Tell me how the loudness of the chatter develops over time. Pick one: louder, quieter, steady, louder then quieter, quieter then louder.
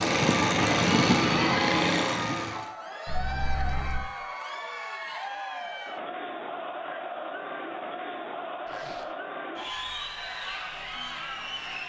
steady.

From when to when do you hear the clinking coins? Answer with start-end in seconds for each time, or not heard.
3.0-4.1.